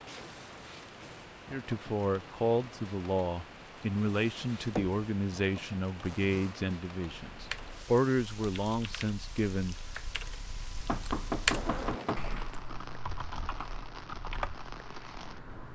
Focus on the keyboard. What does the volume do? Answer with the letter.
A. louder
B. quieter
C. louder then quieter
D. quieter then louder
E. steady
C.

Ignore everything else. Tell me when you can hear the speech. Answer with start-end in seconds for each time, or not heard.
1.5-9.8.